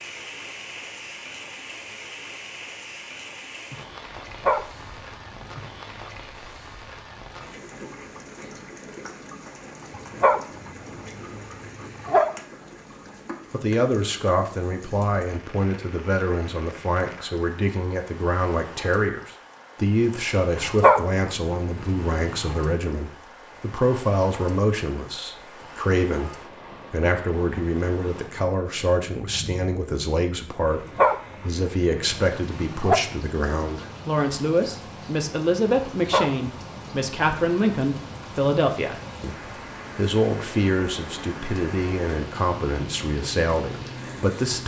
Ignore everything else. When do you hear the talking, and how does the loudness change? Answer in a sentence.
The talking can be heard from 13.5 to 44.6 s, at a steady volume.